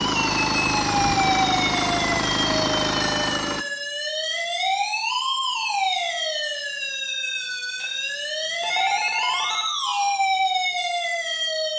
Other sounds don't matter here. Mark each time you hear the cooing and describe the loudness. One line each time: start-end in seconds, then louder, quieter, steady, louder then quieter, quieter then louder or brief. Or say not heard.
not heard.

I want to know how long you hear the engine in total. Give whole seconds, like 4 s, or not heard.
4 s.